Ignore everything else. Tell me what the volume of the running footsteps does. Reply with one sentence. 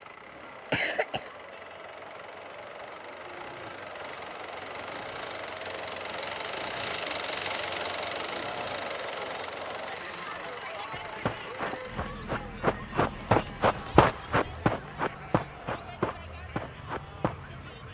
The volume of the running footsteps goes up, then down.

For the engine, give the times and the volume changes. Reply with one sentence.
You can hear the engine from 0.0 to 17.8 s, getting louder then quieter.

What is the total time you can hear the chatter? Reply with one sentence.
The chatter can be heard for 18 seconds in total.